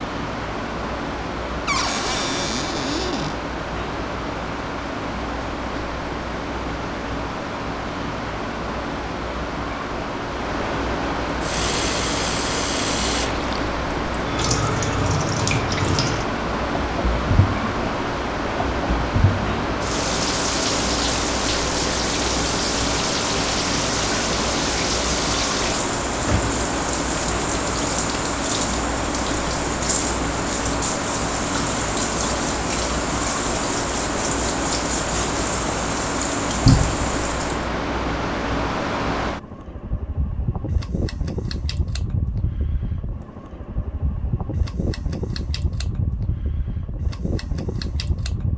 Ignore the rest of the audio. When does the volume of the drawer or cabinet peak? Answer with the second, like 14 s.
37 s.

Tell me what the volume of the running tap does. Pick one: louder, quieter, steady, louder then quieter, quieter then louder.
steady.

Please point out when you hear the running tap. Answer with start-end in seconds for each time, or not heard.
11.2-37.7.